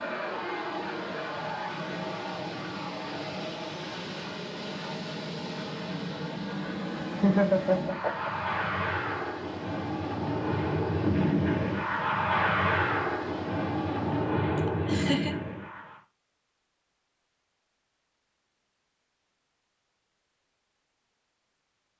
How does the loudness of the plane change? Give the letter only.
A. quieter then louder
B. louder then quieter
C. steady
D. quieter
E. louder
E.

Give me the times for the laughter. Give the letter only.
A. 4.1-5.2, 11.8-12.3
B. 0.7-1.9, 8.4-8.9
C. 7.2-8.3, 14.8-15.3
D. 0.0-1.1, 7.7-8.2
C.